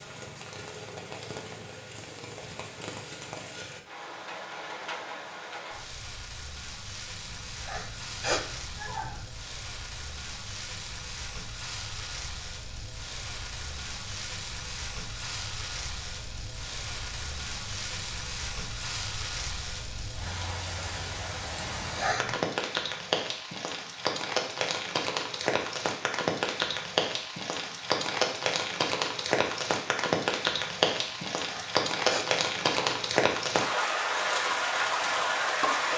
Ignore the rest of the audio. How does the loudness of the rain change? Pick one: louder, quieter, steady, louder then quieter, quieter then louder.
louder.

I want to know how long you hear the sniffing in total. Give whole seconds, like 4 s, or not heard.
5 s.